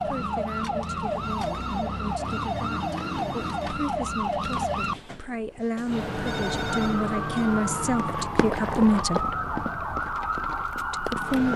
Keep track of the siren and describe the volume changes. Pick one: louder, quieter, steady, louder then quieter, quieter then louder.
steady.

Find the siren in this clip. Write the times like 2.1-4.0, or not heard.
0.0-11.5.